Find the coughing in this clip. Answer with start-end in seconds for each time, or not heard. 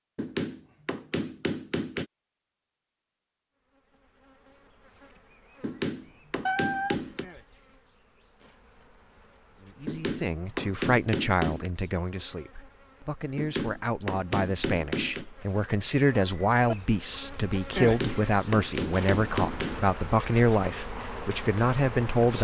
not heard.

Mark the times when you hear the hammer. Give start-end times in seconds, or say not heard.
0.1-2.0, 5.6-7.2, 9.8-11.7, 13.3-15.2, 17.8-19.8.